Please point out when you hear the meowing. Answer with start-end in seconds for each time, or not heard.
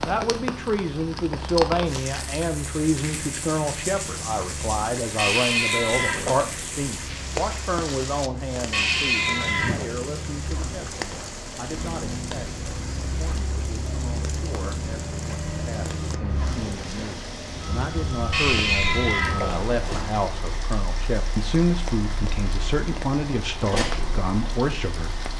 5.2-6.3, 8.7-9.8, 18.3-20.0.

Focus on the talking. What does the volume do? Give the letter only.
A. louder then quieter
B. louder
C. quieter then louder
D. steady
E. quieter
C.